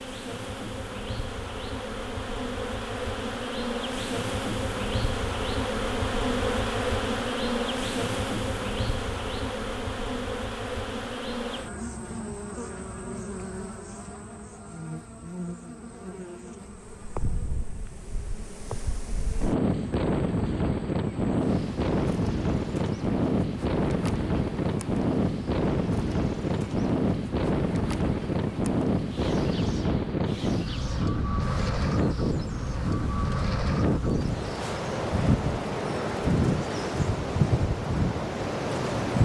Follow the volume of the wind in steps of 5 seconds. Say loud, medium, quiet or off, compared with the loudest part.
off, off, off, medium, loud, loud, loud, loud.